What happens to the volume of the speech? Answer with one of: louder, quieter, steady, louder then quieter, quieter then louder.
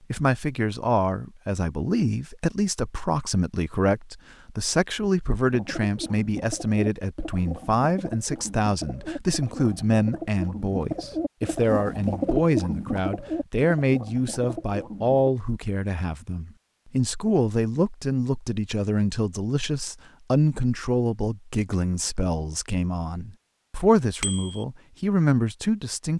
steady.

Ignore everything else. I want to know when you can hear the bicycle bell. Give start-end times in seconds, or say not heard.
24.2-24.6.